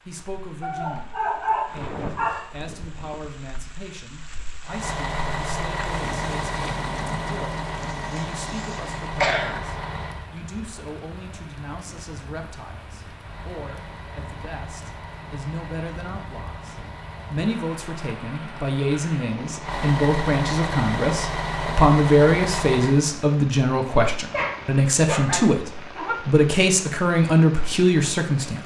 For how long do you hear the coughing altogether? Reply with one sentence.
The coughing can be heard for 2 seconds in total.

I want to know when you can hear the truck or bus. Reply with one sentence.
You can hear the truck or bus from 4.6 to 10.3 s and from 13.1 to 23.1 s.